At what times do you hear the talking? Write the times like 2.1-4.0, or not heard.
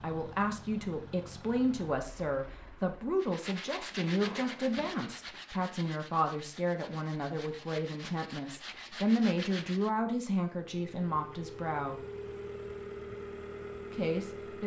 0.0-12.0, 13.9-14.6.